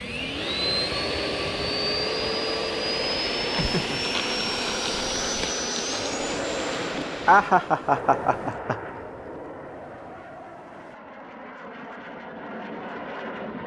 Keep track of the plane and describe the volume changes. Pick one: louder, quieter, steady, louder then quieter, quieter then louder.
quieter.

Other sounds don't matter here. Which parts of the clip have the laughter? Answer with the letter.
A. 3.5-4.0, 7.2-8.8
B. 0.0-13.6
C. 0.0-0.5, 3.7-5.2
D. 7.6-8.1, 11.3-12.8
A.